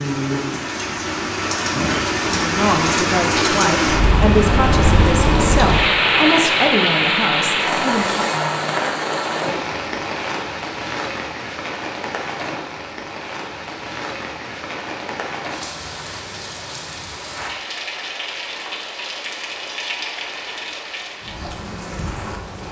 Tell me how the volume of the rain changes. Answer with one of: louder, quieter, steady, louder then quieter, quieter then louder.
quieter.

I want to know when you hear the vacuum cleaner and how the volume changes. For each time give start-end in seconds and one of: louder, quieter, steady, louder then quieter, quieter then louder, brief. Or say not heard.
not heard.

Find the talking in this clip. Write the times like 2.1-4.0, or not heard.
2.4-8.3.